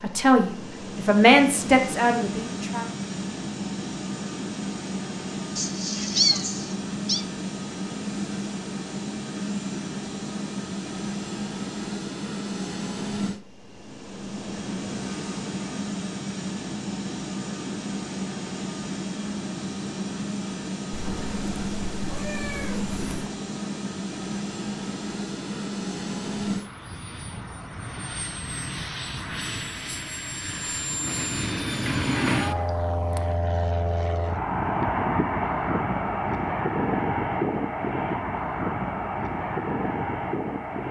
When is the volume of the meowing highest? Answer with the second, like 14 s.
6 s.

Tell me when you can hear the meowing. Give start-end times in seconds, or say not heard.
5.5-7.2, 20.9-23.3, 32.1-33.4.